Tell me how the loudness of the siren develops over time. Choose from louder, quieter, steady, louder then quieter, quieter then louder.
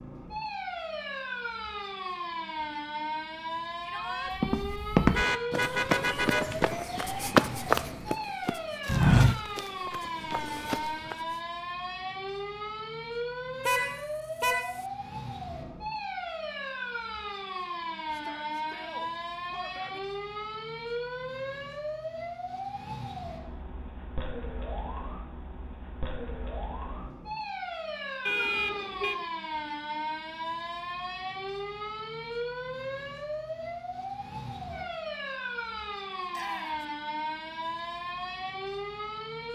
steady.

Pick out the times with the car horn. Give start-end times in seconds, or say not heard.
5.1-6.7, 13.7-14.8, 28.2-29.2.